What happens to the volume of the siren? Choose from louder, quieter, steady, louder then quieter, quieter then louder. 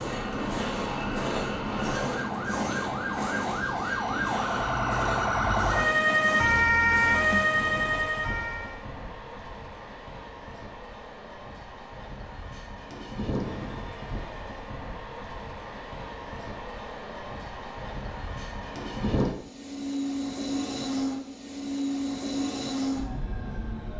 louder.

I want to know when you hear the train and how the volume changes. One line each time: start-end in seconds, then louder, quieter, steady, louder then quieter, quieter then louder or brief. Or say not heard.
0.0-23.9 quieter then louder.